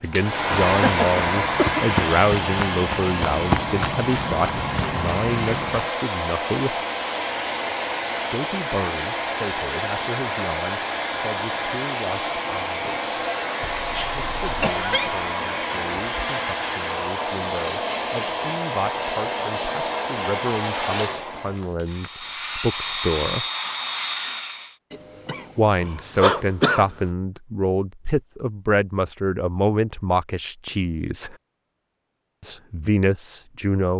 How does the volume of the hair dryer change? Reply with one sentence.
The volume of the hair dryer stays about the same.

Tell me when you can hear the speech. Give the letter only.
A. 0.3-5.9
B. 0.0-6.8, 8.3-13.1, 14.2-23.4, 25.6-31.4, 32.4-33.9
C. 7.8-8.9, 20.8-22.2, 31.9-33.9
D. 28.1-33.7
B.